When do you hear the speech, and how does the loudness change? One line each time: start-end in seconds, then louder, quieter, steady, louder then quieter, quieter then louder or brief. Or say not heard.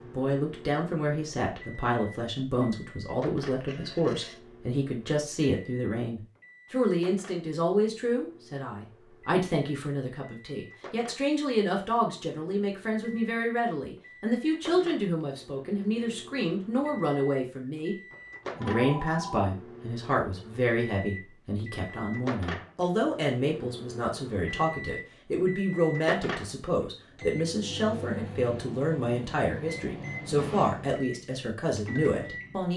0.0-17.9 steady
18.6-32.7 steady.